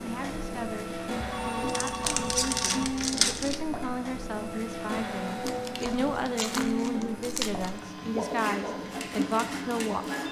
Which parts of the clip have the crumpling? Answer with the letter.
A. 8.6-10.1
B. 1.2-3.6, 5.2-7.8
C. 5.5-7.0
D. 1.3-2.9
B.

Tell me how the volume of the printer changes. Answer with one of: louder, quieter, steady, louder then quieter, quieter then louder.
steady.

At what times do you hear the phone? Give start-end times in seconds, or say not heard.
1.3-2.9.